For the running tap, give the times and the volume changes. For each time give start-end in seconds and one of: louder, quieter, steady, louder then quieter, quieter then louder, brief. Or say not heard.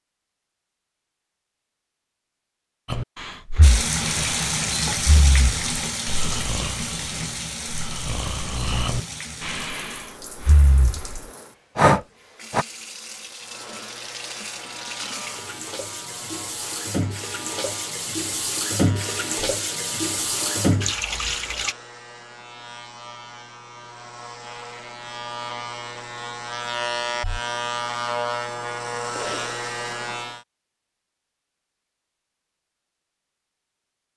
3.6-21.8 quieter then louder.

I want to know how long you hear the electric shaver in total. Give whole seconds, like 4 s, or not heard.
17 s.